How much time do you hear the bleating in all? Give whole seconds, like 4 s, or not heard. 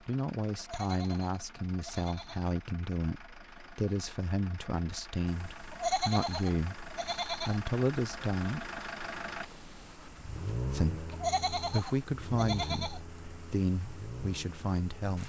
6 s.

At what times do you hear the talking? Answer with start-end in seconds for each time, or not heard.
0.1-8.7, 10.7-15.2.